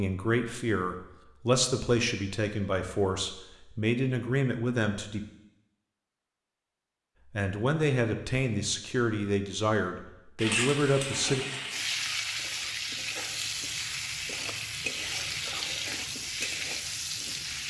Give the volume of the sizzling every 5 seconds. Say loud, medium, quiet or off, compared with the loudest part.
off, off, loud, loud.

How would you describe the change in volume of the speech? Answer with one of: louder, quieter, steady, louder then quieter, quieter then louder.
steady.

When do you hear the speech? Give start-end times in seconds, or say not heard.
0.0-5.2, 7.3-11.4.